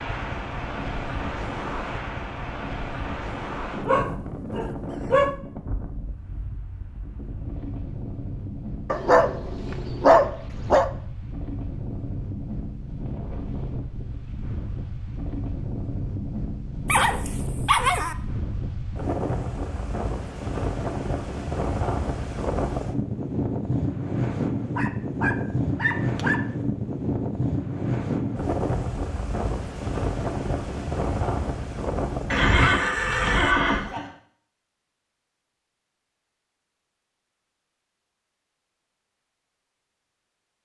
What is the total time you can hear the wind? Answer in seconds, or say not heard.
34 s.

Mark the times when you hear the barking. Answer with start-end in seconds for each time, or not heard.
3.9-5.3, 8.9-10.9, 16.9-18.1, 24.8-26.4, 32.5-33.4.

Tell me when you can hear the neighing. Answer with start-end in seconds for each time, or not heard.
32.3-34.0.